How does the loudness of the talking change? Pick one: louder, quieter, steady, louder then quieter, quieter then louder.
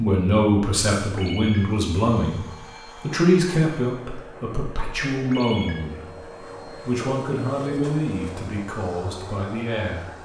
quieter.